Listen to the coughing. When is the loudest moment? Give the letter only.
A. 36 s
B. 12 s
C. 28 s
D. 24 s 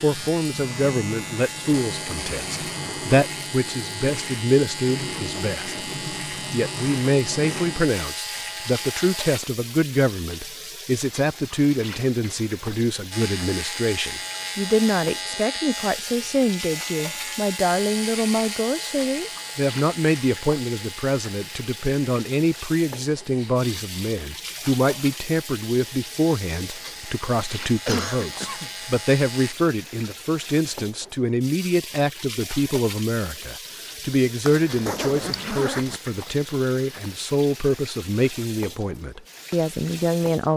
C.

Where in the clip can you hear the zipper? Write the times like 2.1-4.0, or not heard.
34.4-36.0.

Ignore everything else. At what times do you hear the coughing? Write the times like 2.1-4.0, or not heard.
23.4-24.4, 27.9-28.7.